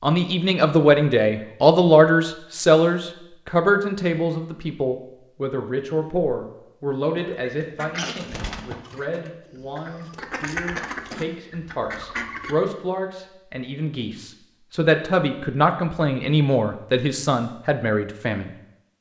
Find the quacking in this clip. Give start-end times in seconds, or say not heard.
7.2-12.6.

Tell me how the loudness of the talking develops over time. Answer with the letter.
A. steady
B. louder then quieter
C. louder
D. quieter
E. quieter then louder
E.